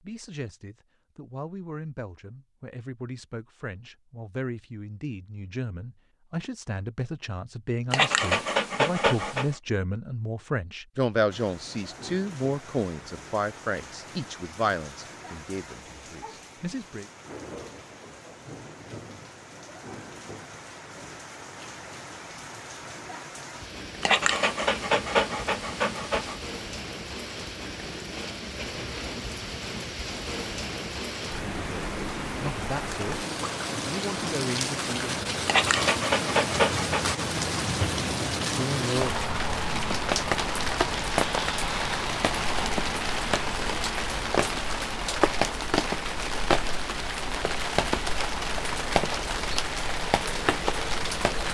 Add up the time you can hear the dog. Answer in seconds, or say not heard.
6 s.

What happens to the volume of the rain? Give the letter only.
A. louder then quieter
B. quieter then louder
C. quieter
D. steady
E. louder
E.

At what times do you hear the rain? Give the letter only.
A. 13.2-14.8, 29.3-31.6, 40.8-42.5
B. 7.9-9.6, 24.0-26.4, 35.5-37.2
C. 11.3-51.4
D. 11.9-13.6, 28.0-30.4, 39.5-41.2
C.